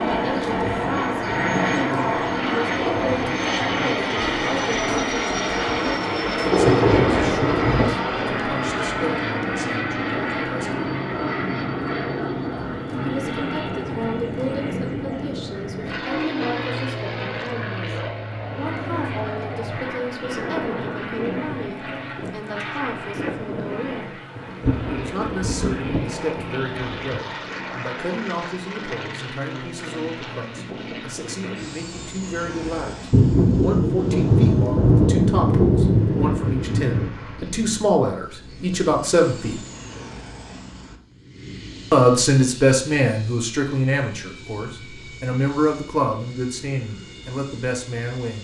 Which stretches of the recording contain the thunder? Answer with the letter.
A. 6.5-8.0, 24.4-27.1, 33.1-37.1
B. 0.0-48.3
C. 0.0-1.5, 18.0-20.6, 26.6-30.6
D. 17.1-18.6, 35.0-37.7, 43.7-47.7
A.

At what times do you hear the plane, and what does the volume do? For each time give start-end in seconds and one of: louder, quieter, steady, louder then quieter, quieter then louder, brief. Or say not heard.
0.0-48.3 quieter.